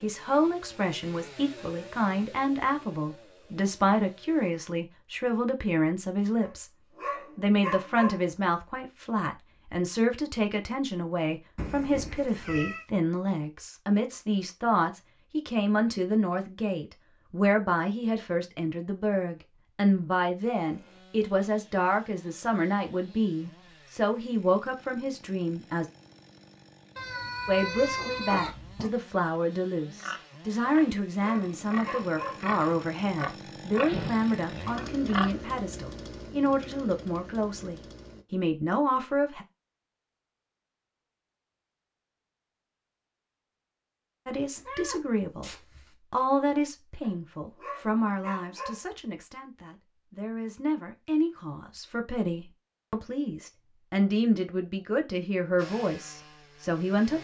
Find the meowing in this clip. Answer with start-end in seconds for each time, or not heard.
11.6-12.8, 26.9-28.9, 44.5-46.0.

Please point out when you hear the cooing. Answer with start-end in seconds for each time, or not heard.
not heard.